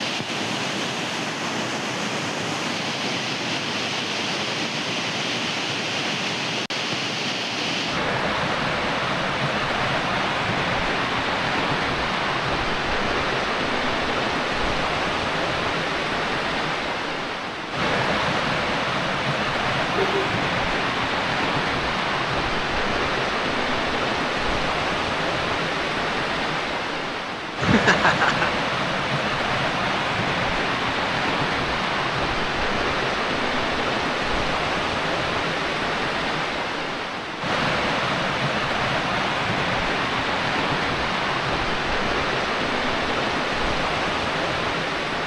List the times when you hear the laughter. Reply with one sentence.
The laughter can be heard from 19.9 to 20.4 s and from 27.6 to 28.5 s.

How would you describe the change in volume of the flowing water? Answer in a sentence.
The loudness of the flowing water stays about the same.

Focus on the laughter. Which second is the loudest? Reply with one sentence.
The loudest moment of the laughter is at 28 seconds.